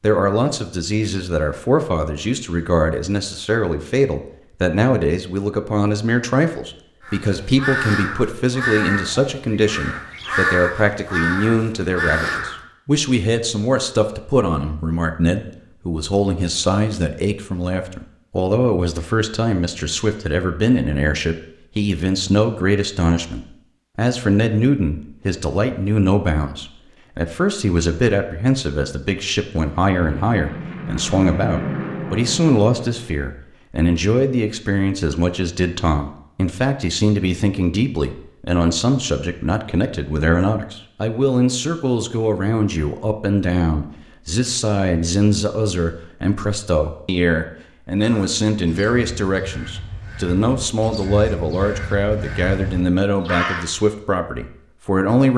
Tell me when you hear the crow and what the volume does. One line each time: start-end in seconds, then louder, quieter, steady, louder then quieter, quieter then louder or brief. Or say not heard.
7.0-12.6 quieter then louder
48.0-53.6 louder.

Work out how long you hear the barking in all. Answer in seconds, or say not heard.
not heard.